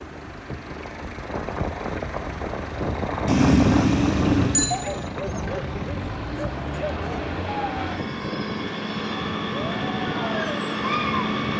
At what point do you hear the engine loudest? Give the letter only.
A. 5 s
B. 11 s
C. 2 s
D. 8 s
B.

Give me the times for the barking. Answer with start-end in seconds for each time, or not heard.
4.7-11.3.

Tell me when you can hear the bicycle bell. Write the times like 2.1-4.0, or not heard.
3.2-4.7.